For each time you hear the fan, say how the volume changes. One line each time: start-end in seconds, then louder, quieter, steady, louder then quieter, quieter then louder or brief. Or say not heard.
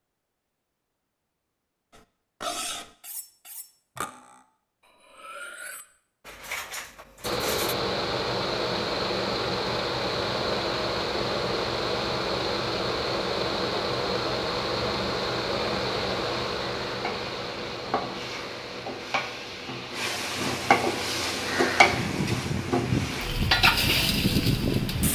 7.2-25.0 quieter then louder.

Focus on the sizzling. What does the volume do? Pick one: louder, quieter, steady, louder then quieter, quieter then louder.
louder.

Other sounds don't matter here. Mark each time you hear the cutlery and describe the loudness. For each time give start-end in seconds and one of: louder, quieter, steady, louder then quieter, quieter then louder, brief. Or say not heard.
1.9-7.8 quieter then louder.